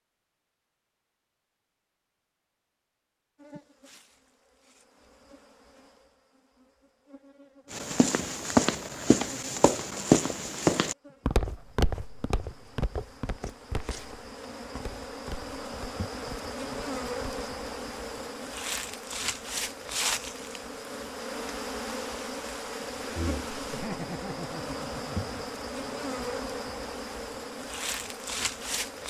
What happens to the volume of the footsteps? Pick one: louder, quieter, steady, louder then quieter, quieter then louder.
quieter.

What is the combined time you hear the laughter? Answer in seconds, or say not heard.
2 s.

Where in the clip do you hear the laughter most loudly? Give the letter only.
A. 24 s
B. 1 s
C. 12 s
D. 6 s
A.